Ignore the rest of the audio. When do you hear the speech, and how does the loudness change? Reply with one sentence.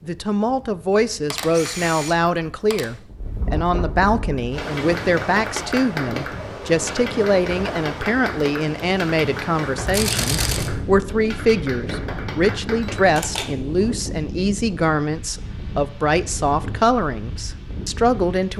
You can hear the speech from 0.0 to 18.5 s, at a steady volume.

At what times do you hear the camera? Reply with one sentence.
You can hear the camera from 1.3 to 2.9 s, from 9.8 to 10.7 s and from 12.9 to 13.9 s.